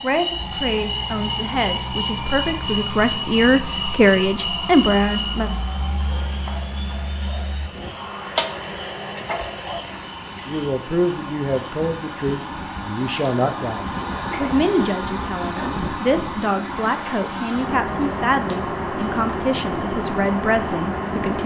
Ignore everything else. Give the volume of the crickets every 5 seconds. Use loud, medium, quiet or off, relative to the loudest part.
medium, loud, medium, quiet, quiet.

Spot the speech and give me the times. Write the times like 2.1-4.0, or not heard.
0.0-5.5, 10.4-21.4.